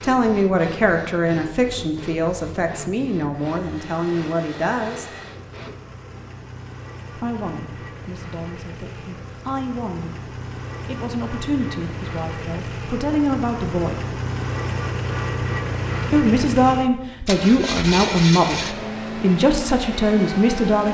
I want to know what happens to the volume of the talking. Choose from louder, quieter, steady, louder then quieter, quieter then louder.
quieter then louder.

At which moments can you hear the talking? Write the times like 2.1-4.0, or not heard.
0.0-5.0, 7.2-10.2, 10.8-14.1, 16.1-20.8.